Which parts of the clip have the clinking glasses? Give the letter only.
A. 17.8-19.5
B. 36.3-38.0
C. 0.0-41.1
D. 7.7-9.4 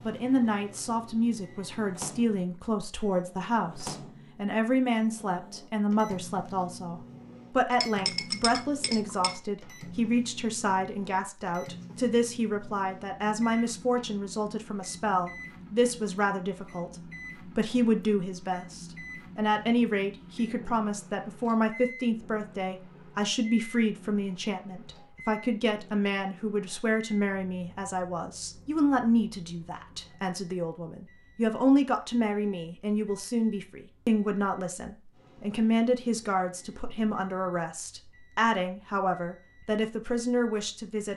D.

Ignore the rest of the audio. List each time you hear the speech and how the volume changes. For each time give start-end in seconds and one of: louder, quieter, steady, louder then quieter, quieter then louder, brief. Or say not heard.
0.0-41.1 steady.